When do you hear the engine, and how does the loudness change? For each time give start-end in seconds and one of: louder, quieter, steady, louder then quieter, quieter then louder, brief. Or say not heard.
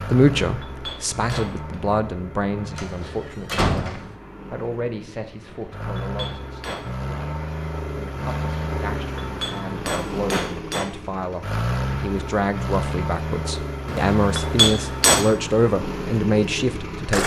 0.0-17.2 louder.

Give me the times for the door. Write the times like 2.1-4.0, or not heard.
2.8-4.1.